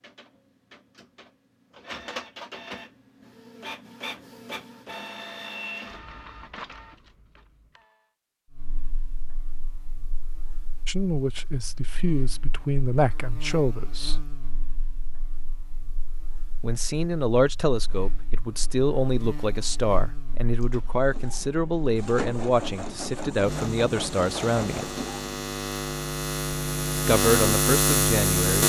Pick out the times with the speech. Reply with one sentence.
You can hear the speech from 10.8 to 14.2 s, from 16.6 to 25.0 s and from 27.1 to 28.6 s.